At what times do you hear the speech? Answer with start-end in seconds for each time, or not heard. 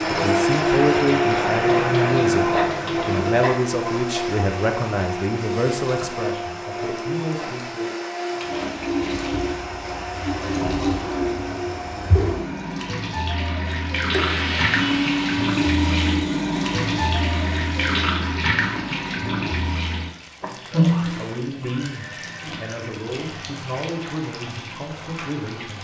0.1-7.9, 20.4-25.8.